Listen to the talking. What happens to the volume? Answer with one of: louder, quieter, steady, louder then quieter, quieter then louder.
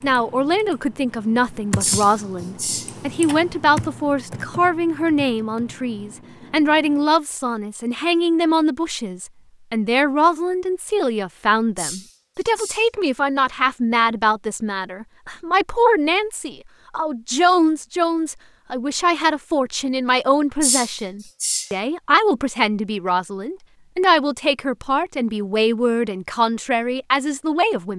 steady.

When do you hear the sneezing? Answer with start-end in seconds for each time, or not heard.
1.8-2.9, 11.8-12.8, 20.6-21.7.